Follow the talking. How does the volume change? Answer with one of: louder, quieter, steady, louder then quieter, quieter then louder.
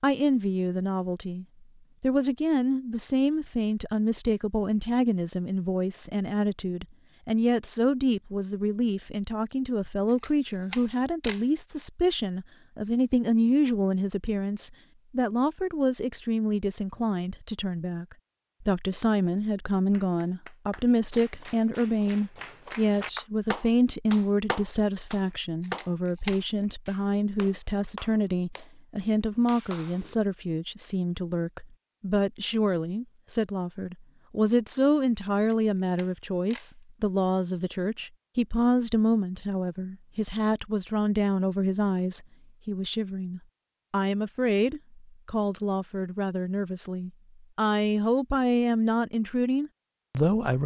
steady.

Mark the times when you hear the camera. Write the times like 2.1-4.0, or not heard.
10.1-11.4, 25.6-26.4, 35.4-36.7.